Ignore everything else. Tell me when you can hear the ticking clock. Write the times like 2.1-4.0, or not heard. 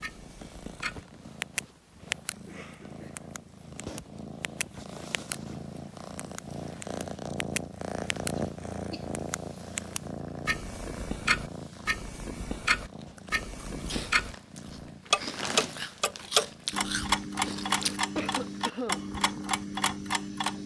0.0-2.4, 3.1-5.3, 6.2-8.3, 9.1-14.3, 15.1-20.6.